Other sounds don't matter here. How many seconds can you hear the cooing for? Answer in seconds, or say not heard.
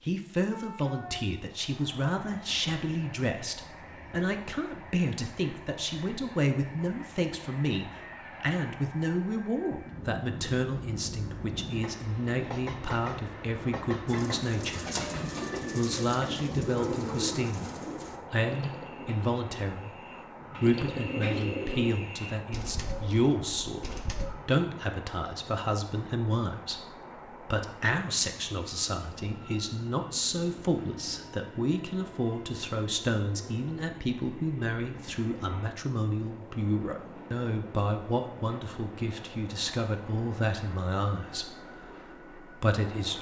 10 s.